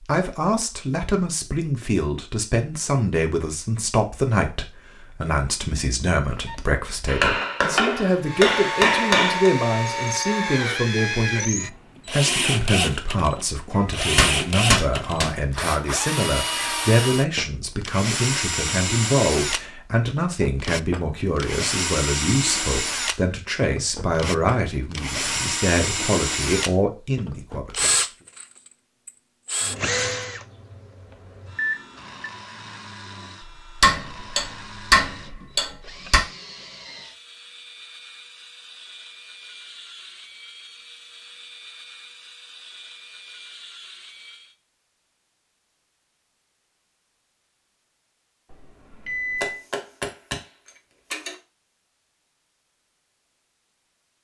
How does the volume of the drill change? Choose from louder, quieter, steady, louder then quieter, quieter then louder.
quieter.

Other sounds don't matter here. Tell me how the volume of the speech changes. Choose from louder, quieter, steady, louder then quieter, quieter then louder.
steady.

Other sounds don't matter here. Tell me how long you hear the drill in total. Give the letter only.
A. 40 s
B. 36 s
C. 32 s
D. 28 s
B.